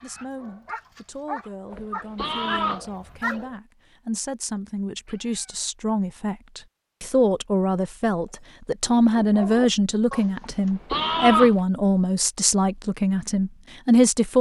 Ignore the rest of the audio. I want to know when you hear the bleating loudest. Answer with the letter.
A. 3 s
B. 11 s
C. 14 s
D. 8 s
B.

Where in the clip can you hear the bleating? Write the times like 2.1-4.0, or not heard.
1.7-2.9, 10.4-11.6.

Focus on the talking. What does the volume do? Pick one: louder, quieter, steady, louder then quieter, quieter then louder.
louder.